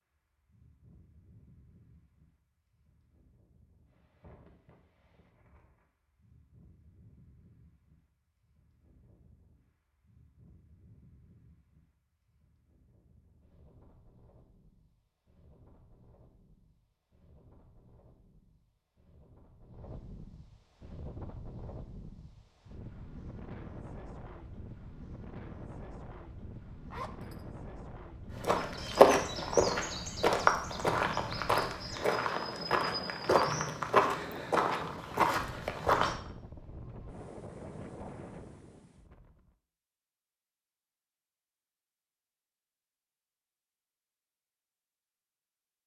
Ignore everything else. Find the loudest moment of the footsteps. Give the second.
29 s.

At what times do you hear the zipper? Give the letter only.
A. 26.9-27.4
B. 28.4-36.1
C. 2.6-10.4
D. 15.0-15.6
A.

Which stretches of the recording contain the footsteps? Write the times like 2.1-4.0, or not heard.
28.4-36.1.